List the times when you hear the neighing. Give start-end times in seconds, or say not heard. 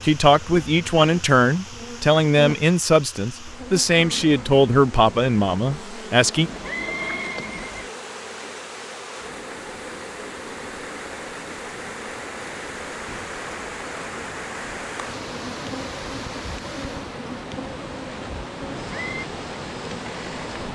6.3-7.9, 18.8-19.2.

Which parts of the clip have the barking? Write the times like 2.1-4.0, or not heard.
not heard.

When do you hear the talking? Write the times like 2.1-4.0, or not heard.
0.0-6.5.